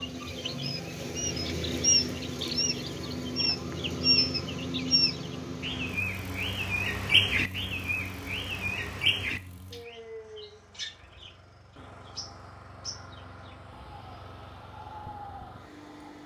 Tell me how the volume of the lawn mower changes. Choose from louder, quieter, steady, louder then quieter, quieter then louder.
quieter.